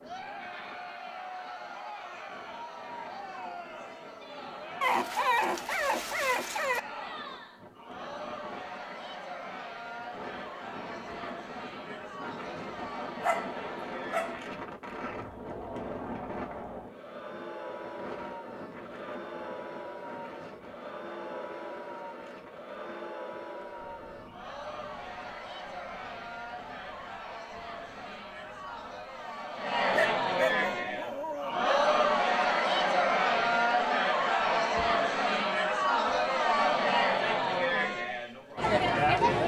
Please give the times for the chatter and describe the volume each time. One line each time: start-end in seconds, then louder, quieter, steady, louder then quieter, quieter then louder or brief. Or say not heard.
0.0-39.4 louder.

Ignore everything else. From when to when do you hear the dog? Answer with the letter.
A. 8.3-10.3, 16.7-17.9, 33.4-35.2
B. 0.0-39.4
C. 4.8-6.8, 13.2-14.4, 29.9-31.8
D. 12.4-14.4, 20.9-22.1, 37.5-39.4
C.